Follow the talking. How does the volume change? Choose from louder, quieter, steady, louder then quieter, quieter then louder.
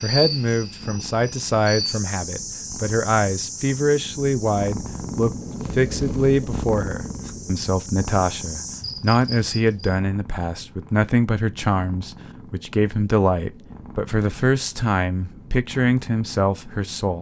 steady.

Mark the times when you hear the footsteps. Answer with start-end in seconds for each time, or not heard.
not heard.